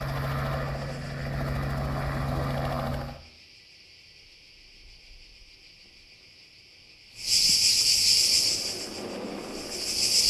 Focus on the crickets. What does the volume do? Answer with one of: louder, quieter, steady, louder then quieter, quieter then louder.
louder.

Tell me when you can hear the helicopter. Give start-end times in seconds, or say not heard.
0.0-3.2, 8.1-10.2.